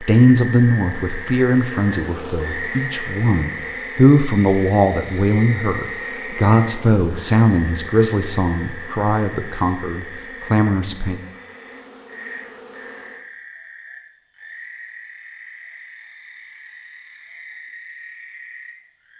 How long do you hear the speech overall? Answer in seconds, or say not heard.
11 s.